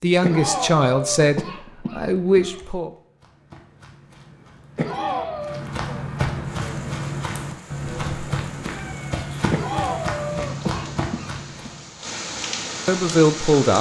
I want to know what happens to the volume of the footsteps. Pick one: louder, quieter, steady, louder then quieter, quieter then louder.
louder.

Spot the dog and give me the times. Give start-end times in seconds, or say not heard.
not heard.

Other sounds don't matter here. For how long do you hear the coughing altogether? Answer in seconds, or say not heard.
6 s.